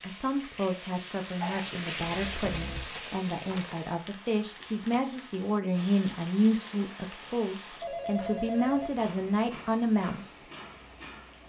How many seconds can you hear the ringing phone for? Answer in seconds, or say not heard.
2 s.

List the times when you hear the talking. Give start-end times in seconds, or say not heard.
0.0-10.4.